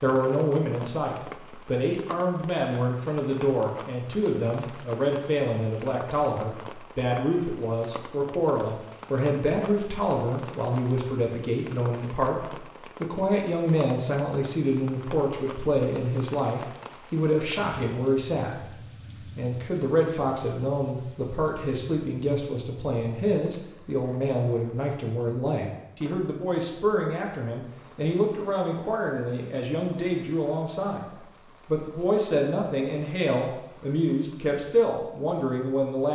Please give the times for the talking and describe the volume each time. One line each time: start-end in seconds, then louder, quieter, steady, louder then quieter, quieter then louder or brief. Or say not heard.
0.0-36.0 steady.